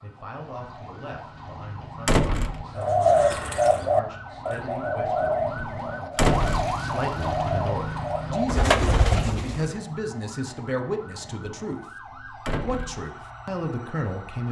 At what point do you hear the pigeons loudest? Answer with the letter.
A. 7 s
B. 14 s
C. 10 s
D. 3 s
D.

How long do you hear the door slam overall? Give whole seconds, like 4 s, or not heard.
2 s.